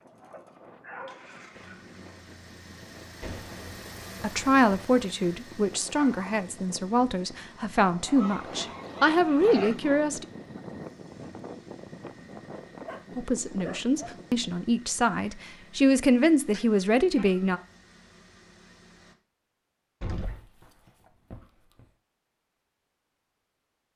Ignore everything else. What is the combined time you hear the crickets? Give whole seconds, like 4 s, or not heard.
not heard.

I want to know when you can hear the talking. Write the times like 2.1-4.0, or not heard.
4.2-10.2, 13.2-17.6.